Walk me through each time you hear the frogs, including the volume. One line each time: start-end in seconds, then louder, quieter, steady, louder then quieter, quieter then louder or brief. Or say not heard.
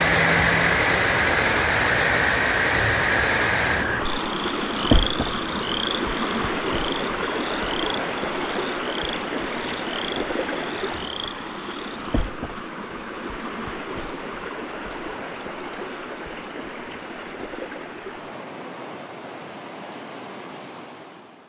0.0-12.1 quieter.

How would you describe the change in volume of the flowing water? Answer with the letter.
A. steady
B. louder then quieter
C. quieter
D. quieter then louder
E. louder
C.